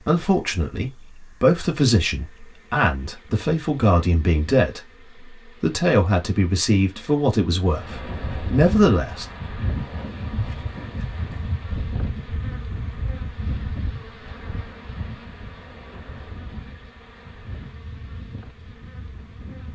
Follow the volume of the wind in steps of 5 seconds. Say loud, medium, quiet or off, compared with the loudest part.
off, loud, loud, medium.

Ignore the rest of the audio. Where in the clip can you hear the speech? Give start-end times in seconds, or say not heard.
0.1-9.2.